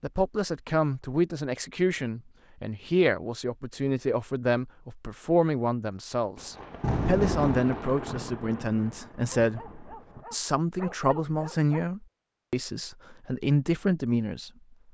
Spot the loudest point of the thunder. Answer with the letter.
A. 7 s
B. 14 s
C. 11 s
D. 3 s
A.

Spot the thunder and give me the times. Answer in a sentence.
You can hear the thunder from 6.3 to 10.2 s.